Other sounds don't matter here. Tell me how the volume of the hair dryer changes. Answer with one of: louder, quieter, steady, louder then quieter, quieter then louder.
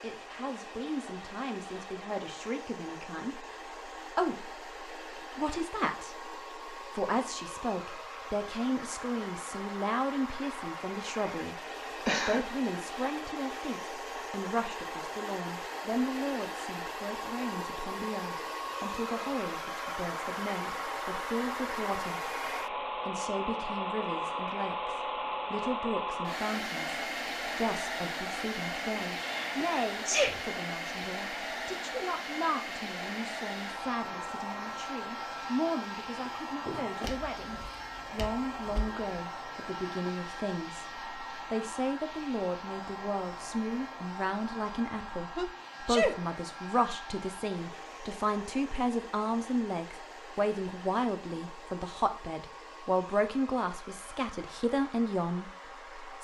louder then quieter.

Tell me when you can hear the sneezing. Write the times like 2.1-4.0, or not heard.
12.0-12.6, 29.1-30.4, 45.4-46.1.